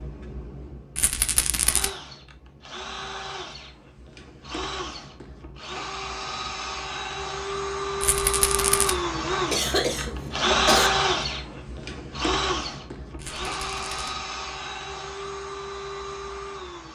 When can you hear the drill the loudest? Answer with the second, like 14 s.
11 s.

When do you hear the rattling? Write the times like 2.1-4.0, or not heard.
0.9-1.9, 8.0-8.9, 13.2-14.2.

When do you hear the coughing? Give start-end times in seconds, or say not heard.
9.5-10.9.